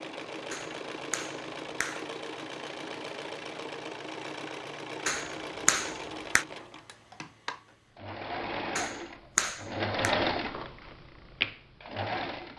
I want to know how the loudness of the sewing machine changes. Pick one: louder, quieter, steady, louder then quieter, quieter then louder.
louder.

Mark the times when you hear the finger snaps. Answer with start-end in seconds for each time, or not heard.
0.5-2.0, 5.0-6.5, 8.8-10.2.